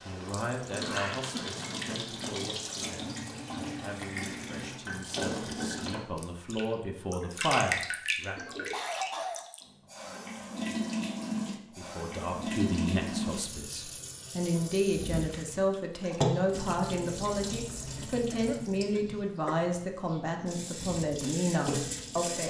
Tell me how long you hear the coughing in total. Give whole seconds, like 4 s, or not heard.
3 s.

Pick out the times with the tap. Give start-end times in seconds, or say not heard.
0.0-22.4.